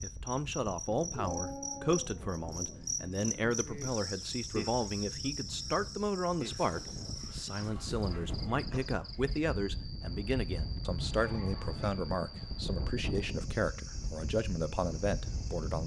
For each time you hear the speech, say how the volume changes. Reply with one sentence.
You can hear the speech from 0.0 to 15.8 s, at a steady volume.